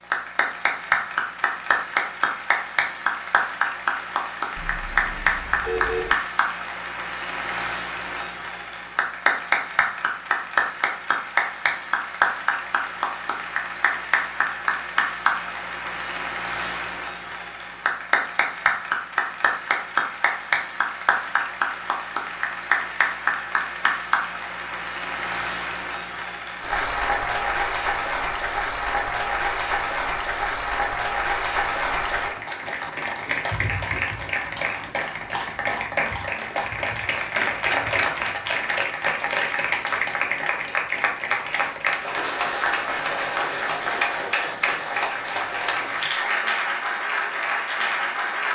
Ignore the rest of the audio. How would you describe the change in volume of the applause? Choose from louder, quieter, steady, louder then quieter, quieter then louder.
steady.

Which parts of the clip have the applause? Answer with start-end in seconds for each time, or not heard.
0.1-48.5.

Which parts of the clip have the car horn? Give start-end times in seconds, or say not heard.
4.5-6.2.